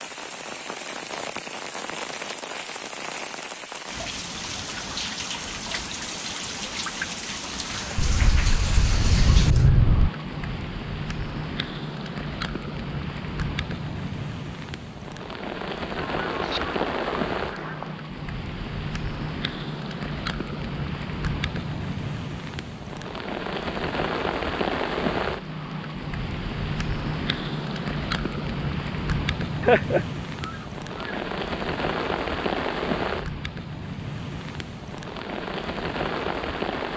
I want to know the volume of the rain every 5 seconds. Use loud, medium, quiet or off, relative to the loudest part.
medium, loud, loud, loud, loud, loud, loud, loud.